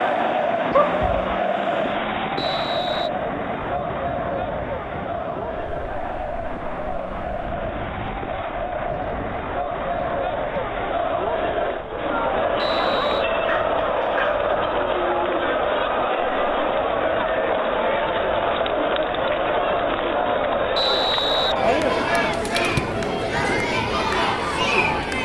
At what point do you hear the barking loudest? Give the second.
1 s.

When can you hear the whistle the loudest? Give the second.
21 s.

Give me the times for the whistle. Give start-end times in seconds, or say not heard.
2.4-3.1, 12.6-13.2, 20.8-21.6.